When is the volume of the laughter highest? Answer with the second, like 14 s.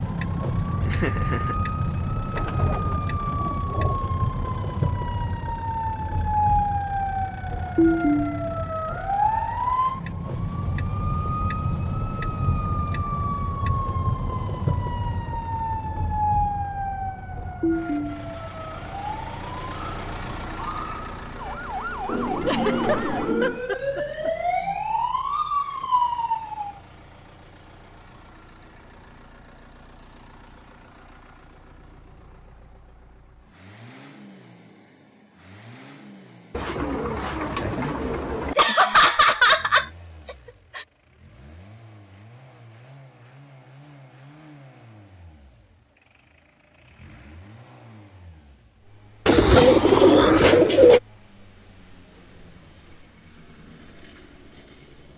39 s.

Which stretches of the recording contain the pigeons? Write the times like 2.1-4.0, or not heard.
2.4-4.0, 22.1-23.6, 36.5-38.5, 49.2-51.0.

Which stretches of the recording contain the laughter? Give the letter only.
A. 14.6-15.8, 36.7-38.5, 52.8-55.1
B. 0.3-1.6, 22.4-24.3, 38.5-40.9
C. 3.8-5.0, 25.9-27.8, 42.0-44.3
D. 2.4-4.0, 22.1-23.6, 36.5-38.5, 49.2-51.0
B.